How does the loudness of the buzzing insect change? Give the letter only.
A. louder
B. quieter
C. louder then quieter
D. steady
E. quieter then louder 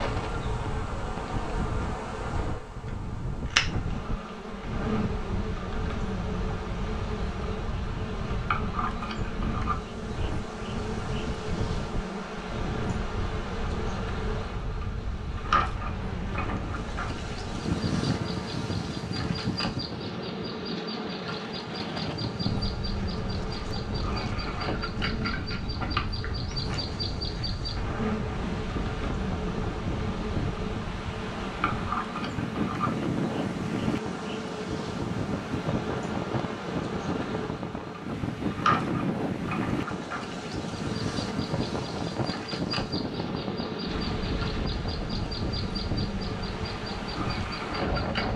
D.